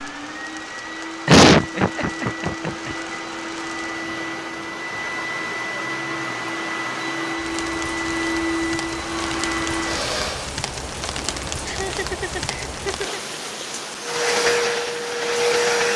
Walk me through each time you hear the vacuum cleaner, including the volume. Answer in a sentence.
You can hear the vacuum cleaner from 0.0 to 10.5 s, getting louder; and briefly from 14.0 to 15.9 s.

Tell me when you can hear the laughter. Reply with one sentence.
You can hear the laughter from 1.2 to 3.0 s and from 11.6 to 13.2 s.